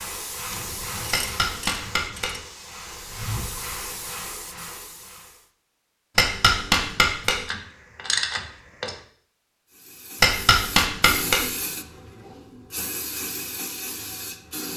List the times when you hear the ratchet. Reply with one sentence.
The ratchet can be heard from 0.5 to 2.4 s and from 7.5 to 8.9 s.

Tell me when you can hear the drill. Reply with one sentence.
The drill can't be heard in this clip.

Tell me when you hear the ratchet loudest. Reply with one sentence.
The loudest moment of the ratchet is at 8 seconds.